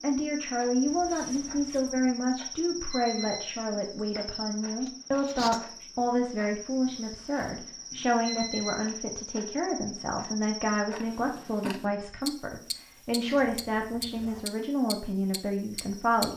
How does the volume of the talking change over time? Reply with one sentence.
The loudness of the talking stays about the same.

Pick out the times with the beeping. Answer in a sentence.
You can hear the beeping from 2.9 to 3.5 s and from 8.2 to 8.8 s.